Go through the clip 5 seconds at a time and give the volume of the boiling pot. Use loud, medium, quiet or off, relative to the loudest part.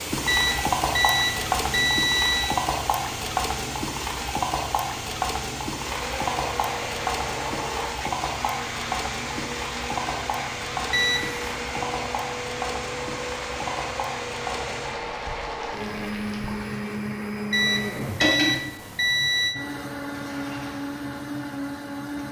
loud, loud, medium, medium, quiet.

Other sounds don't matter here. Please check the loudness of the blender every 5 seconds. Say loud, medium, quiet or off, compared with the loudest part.
off, loud, loud, loud, loud.